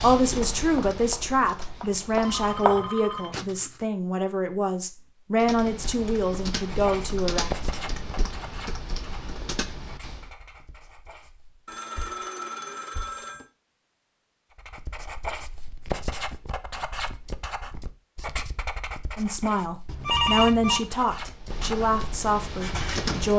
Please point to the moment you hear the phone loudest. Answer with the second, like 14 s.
20 s.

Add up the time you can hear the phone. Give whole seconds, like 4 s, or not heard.
4 s.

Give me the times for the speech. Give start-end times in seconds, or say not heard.
0.0-7.5, 19.1-23.3.